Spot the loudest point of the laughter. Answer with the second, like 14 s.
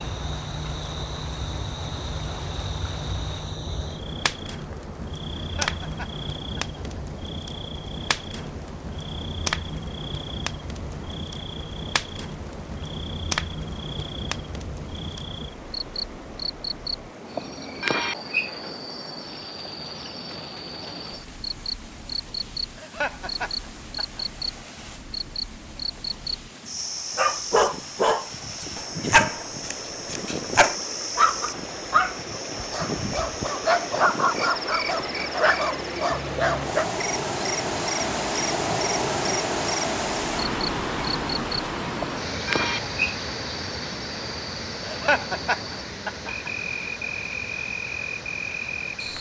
45 s.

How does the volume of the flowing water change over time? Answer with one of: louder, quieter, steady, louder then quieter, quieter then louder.
louder.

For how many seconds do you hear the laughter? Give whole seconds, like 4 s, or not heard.
5 s.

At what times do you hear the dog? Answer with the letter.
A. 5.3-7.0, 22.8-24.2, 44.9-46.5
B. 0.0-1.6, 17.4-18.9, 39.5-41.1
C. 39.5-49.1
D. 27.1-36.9
D.